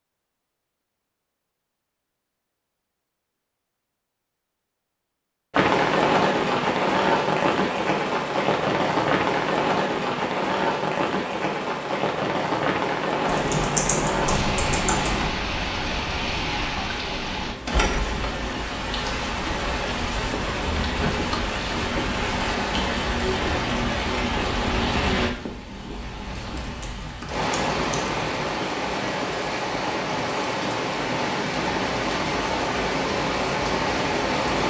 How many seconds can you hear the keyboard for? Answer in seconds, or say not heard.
4 s.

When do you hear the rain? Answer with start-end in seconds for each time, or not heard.
5.5-34.6.